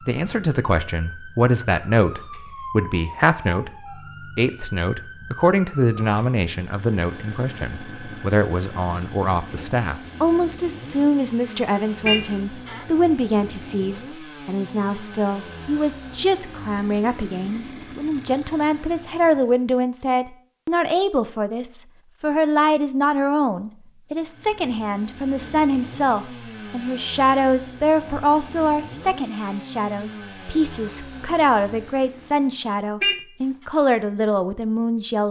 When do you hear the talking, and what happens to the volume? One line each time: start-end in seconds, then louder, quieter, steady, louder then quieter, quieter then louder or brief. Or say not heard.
0.1-35.2 steady.